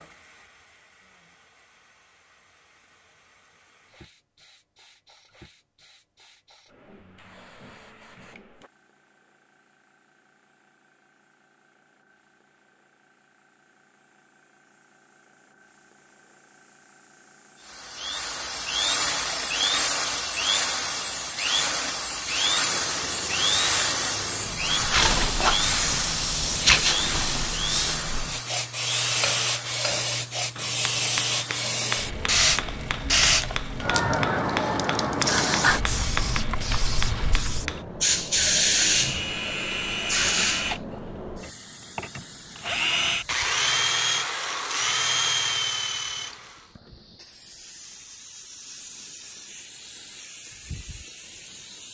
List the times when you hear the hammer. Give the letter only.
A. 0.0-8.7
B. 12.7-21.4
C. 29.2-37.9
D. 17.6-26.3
C.